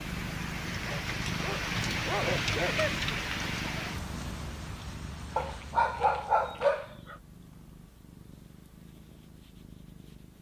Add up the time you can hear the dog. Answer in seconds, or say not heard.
4 s.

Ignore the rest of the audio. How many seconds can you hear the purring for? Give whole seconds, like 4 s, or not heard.
10 s.